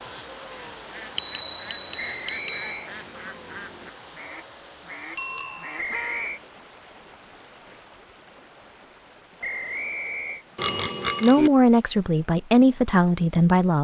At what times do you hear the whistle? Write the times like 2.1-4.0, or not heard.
2.0-2.9, 5.8-6.4, 9.4-10.4.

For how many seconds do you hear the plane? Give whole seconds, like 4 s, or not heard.
not heard.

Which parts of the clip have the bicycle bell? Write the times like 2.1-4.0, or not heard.
1.1-2.7, 5.2-5.8, 10.6-11.5.